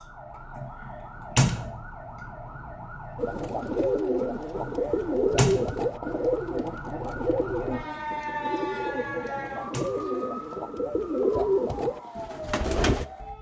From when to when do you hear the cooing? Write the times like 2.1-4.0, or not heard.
3.1-13.1.